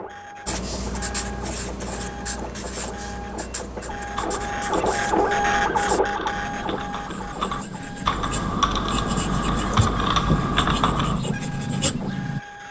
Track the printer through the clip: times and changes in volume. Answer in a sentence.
You can hear the printer from 0.0 to 12.6 s, getting louder then quieter.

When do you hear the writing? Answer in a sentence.
The writing can be heard from 0.5 to 12.4 s.